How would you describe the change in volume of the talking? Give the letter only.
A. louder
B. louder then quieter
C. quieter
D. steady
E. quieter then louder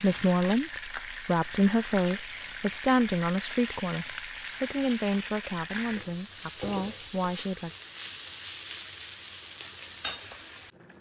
C.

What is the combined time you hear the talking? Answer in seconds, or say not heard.
8 s.